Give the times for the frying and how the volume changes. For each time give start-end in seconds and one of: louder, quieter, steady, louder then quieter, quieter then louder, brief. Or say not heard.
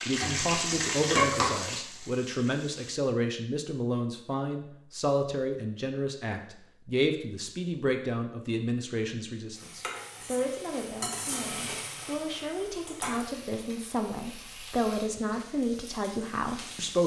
0.0-3.0 brief
9.5-17.0 quieter.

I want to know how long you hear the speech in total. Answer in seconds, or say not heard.
17 s.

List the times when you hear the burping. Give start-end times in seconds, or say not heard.
not heard.